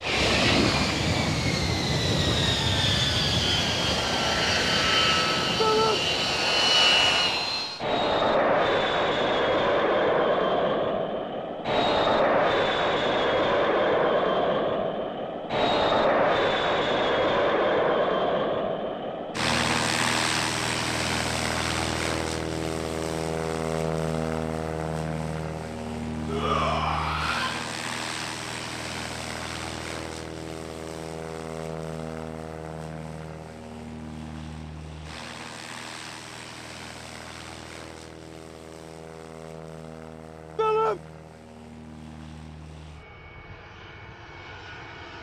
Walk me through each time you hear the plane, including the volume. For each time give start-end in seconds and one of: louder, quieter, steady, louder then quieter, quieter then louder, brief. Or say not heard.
0.0-45.1 quieter.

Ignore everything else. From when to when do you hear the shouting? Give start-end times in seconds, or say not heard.
5.5-6.0, 26.2-27.6, 40.5-41.0.